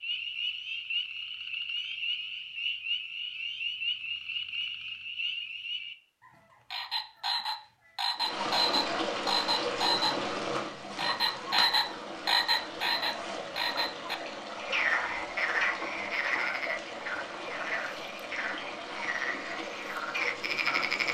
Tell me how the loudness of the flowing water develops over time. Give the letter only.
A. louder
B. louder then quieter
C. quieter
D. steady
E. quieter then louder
C.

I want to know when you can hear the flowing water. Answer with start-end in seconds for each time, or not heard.
8.2-21.0.